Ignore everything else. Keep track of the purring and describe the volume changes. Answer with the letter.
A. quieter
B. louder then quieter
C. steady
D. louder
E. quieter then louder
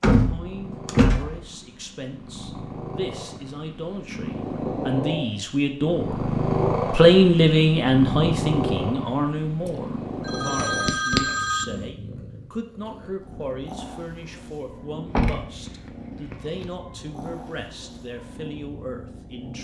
B.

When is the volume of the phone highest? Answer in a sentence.
The loudest moment of the phone is at 11 seconds.